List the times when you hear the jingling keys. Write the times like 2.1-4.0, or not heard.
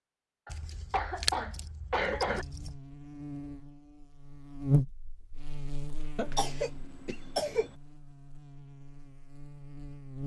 0.5-2.8.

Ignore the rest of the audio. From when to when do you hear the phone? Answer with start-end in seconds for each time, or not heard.
not heard.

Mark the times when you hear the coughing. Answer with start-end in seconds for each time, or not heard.
0.5-2.5, 6.2-7.8.